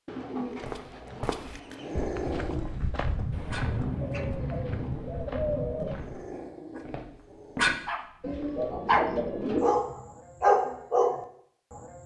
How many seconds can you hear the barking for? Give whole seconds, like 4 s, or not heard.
8 s.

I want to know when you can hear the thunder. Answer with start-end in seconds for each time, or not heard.
3.3-6.1.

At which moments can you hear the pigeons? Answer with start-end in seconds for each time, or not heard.
0.1-2.1, 4.0-6.0, 8.2-9.8.